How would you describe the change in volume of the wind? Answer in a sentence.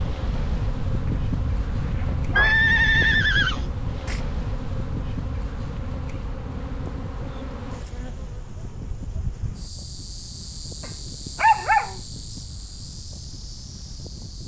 The loudness of the wind goes down.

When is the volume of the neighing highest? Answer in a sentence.
The volume of the neighing peaks at 3 seconds.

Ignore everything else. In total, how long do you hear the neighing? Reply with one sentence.
The neighing can be heard for 2 seconds in total.